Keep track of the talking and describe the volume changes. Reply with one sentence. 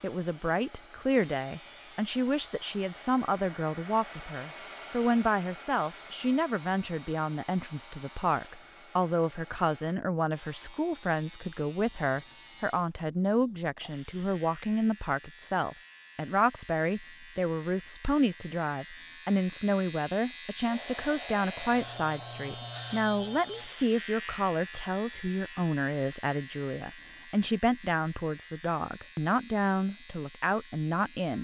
The loudness of the talking stays about the same.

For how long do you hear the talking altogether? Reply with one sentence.
You can hear the talking for 31 seconds altogether.